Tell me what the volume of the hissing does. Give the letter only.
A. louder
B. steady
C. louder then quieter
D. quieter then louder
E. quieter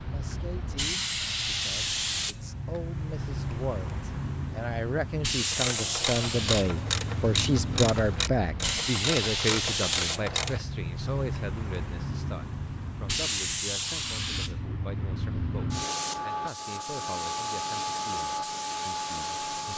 B.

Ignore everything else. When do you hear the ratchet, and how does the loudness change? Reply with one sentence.
The ratchet can be heard from 5.5 to 10.6 s, at a steady volume.